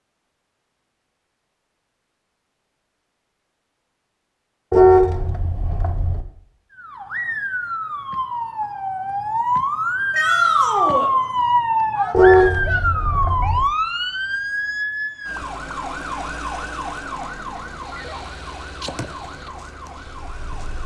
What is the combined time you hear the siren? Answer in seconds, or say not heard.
14 s.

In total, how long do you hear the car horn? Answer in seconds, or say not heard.
3 s.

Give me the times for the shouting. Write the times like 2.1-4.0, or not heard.
10.1-11.1.